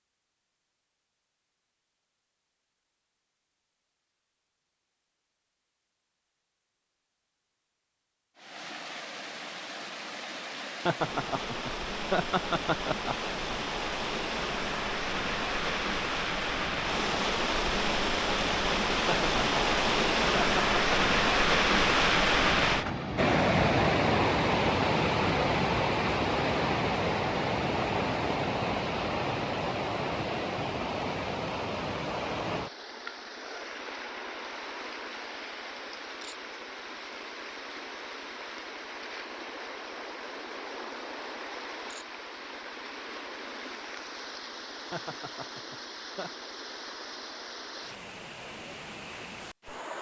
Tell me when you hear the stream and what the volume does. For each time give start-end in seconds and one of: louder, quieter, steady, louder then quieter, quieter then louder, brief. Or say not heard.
8.3-49.9 louder then quieter.